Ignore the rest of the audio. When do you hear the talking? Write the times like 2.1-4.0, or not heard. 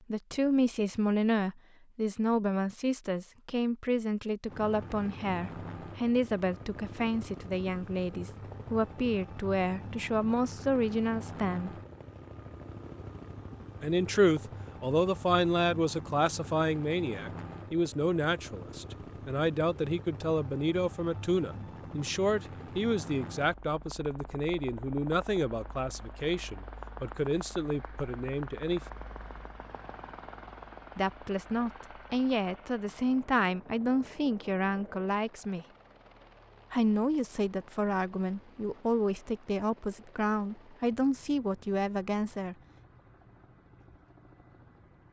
0.1-11.7, 13.8-28.8, 30.9-35.6, 36.7-42.5.